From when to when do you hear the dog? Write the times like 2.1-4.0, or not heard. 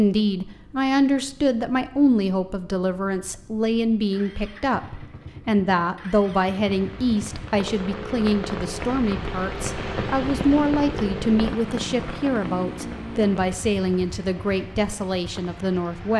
not heard.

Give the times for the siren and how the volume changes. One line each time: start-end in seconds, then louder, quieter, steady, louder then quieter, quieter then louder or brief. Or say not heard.
not heard.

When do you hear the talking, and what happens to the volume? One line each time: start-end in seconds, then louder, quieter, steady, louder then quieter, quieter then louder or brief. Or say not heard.
0.0-16.1 steady.